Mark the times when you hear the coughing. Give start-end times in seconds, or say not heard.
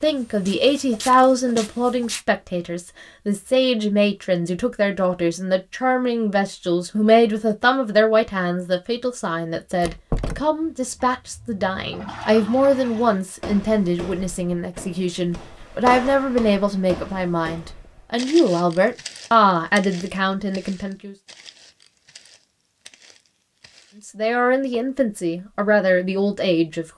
not heard.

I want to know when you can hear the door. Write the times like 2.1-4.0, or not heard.
9.8-10.4.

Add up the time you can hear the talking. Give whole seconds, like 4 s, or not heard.
24 s.